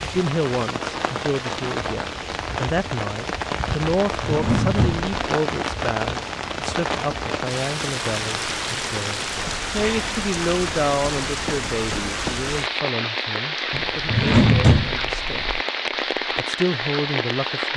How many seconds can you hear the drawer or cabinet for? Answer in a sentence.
The drawer or cabinet can be heard for 3 seconds in total.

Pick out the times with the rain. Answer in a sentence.
The rain can be heard from 0.0 to 17.7 s.